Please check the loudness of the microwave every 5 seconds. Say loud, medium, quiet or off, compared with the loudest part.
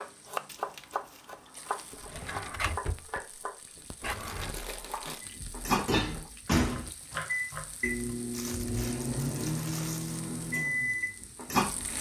off, loud, loud.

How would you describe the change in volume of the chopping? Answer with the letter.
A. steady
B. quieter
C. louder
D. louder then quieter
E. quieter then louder
E.